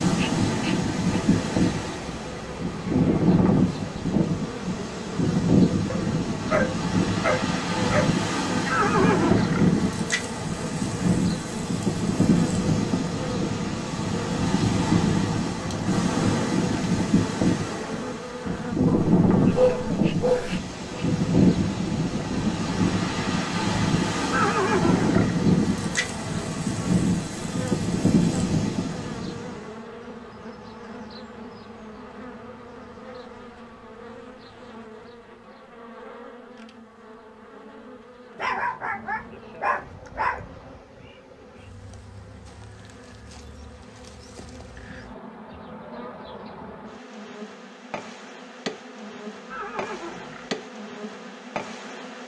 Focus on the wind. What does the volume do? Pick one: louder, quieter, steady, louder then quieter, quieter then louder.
steady.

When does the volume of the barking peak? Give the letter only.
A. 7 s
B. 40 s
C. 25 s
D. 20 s
D.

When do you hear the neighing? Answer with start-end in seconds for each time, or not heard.
8.7-9.7, 24.3-25.4, 49.5-50.5.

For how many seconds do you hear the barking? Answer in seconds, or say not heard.
7 s.